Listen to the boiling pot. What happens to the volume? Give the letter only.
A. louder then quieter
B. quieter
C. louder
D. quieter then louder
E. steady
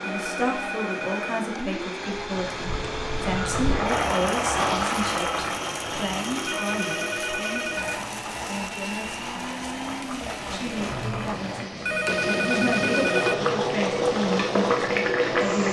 D.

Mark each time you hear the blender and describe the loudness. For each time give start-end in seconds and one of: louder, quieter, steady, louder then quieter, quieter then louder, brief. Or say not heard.
0.0-15.6 steady.